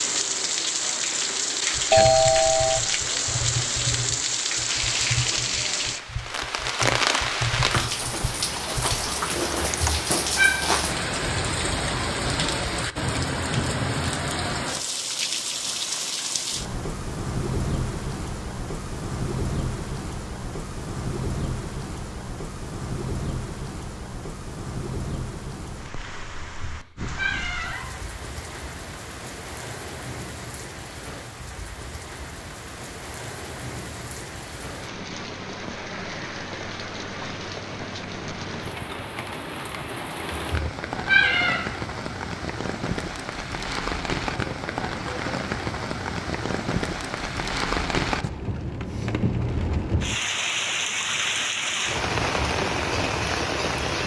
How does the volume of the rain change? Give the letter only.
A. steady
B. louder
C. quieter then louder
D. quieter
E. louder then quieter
C.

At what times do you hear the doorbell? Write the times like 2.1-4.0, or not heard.
1.9-2.8.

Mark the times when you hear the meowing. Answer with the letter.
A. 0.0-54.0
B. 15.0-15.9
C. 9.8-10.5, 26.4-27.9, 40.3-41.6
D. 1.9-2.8
C.